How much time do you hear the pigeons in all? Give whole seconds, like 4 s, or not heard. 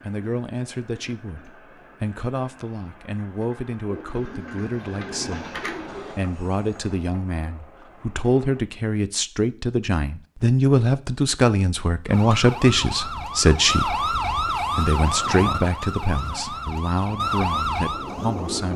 2 s.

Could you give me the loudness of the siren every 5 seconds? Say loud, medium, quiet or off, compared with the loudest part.
off, off, loud, loud.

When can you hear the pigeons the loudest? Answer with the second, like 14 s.
6 s.